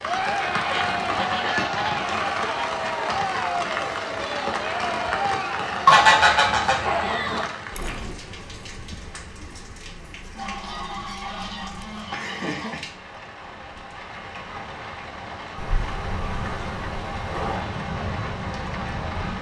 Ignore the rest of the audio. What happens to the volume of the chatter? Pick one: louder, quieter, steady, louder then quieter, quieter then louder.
quieter.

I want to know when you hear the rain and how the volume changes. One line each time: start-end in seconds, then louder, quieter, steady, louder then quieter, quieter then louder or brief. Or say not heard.
0.0-19.3 quieter then louder.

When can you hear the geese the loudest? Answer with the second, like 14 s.
6 s.